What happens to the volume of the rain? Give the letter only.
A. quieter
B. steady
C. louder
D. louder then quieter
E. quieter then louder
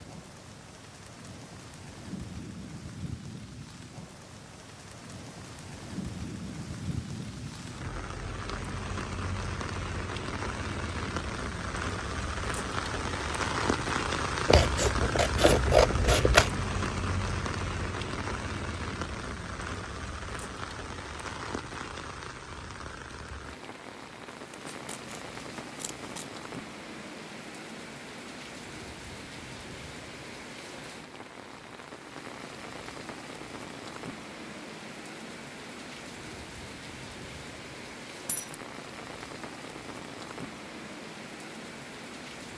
D.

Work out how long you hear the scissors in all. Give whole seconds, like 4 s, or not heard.
4 s.